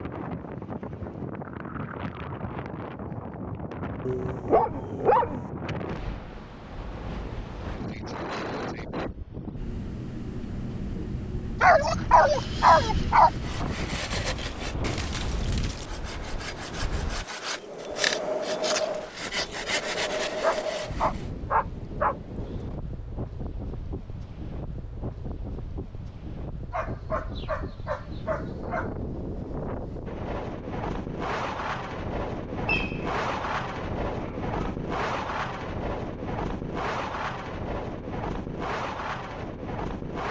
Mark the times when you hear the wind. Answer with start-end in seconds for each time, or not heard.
0.0-40.2.